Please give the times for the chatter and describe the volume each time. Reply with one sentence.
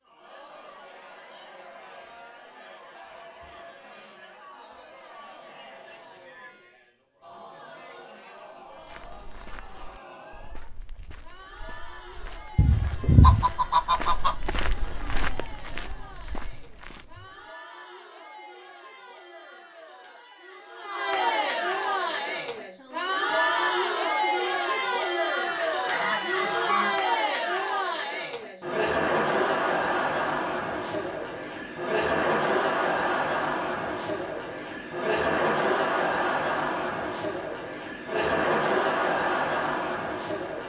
You can hear the chatter from 0.0 to 40.6 s, getting louder.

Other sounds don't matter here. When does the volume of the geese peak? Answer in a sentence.
The volume of the geese peaks at 13 seconds.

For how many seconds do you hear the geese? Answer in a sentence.
You can hear the geese for 3 seconds altogether.